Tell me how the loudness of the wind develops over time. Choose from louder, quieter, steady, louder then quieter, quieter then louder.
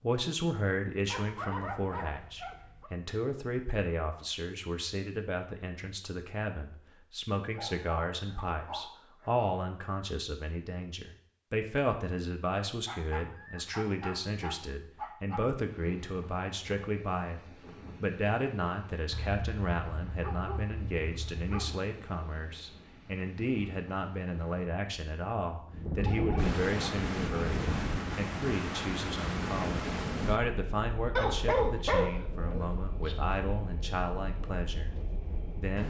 louder then quieter.